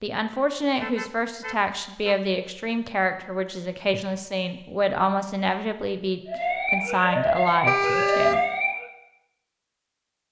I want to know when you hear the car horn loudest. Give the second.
8 s.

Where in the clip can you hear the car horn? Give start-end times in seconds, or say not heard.
0.8-2.1, 7.7-8.6.